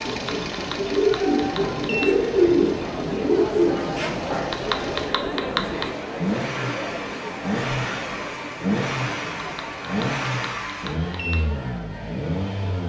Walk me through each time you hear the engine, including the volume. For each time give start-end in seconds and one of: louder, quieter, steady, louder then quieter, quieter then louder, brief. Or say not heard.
0.0-12.8 louder.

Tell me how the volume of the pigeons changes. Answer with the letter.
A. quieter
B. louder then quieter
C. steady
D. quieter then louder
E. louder
A.